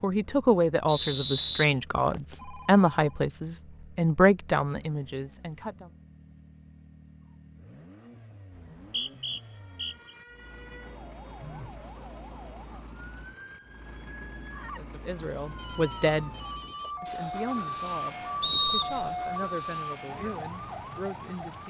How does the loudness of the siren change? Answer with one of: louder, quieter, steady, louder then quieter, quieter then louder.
louder.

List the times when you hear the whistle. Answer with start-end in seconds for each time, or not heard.
0.8-2.4, 8.6-10.2, 18.4-19.1.